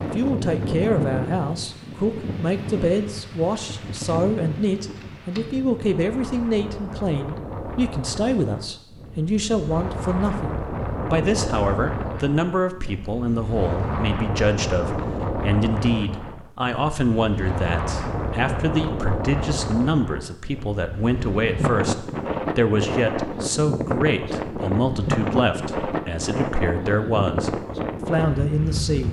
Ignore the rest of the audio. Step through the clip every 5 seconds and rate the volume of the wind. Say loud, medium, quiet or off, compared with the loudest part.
loud, medium, loud, loud, loud, loud.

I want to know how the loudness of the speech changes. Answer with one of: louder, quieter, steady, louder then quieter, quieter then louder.
steady.